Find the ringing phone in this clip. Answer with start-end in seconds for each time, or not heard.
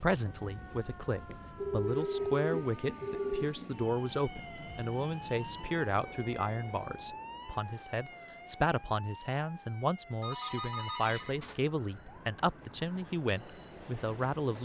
1.6-3.5, 10.2-11.6.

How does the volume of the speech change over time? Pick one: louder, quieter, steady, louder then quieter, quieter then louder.
steady.